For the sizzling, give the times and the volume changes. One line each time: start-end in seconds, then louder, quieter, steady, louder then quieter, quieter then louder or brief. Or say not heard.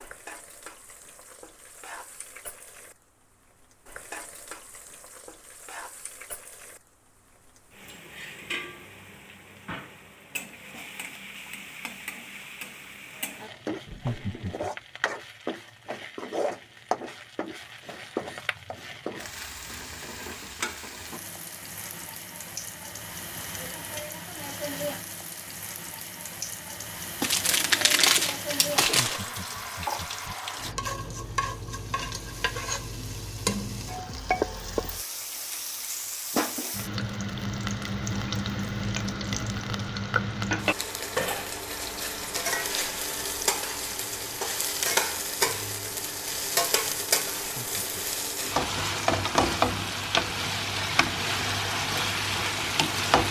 0.0-53.2 louder.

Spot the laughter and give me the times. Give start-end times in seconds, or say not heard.
13.8-14.7, 28.9-30.4, 47.4-48.0.